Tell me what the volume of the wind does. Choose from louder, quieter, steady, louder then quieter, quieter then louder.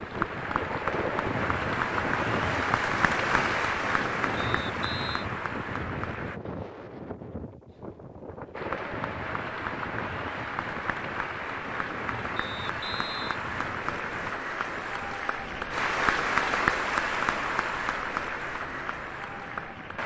quieter.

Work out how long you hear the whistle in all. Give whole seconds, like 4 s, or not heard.
2 s.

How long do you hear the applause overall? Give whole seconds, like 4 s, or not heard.
18 s.